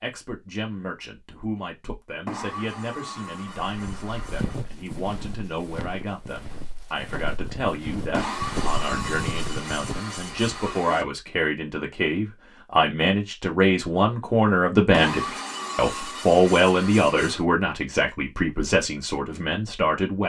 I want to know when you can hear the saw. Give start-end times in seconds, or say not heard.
2.2-4.7, 8.1-11.1, 14.9-17.4.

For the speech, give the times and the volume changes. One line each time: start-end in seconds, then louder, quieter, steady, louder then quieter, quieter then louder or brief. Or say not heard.
0.0-20.2 louder.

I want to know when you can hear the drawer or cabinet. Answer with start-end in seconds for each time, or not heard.
not heard.